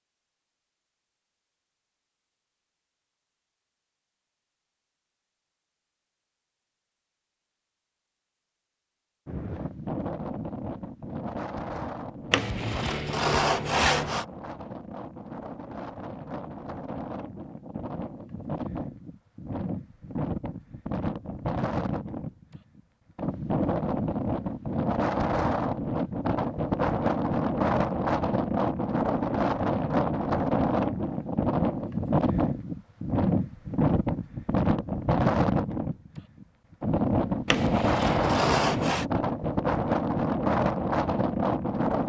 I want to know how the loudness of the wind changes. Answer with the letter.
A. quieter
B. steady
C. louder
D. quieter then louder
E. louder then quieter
C.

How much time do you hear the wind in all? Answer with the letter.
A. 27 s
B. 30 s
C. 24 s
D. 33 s
D.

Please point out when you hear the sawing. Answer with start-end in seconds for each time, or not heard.
12.3-14.2, 37.5-39.0.